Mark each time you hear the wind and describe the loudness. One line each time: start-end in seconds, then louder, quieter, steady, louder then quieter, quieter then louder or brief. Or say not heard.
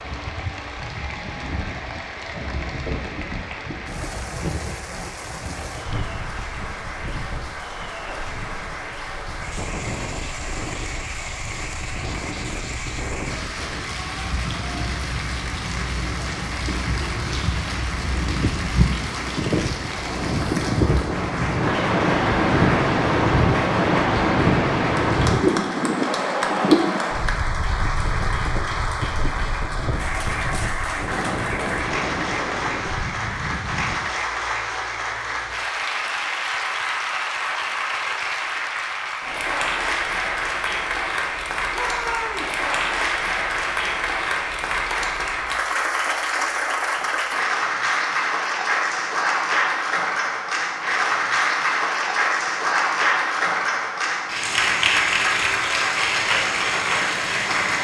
0.0-34.1 louder then quieter.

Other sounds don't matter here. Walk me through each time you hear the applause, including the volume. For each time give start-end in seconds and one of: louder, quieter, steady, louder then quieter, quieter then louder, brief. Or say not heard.
0.0-57.7 louder.